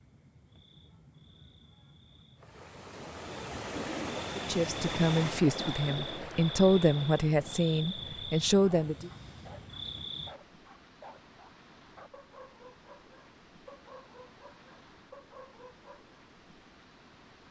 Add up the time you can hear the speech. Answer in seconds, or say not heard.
5 s.